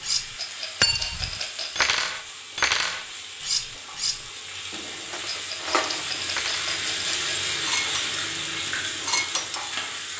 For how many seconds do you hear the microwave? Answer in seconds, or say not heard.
not heard.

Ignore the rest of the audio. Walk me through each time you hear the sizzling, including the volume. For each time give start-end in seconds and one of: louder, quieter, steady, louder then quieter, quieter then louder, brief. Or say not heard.
0.0-10.1 louder.